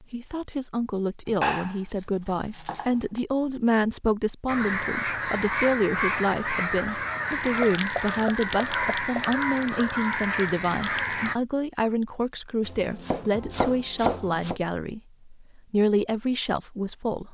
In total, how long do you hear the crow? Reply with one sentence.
The crow can be heard for 7 seconds in total.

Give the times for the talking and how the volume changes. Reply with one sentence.
The talking can be heard from 0.1 to 17.2 s, at a steady volume.